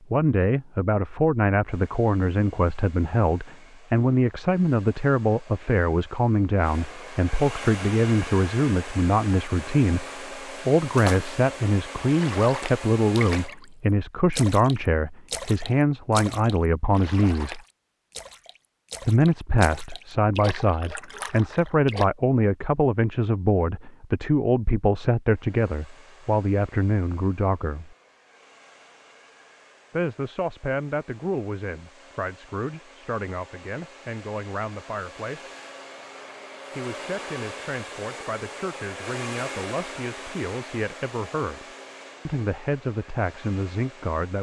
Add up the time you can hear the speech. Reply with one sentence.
You can hear the speech for 39 seconds altogether.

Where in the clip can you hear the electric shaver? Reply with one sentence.
You can't hear the electric shaver here.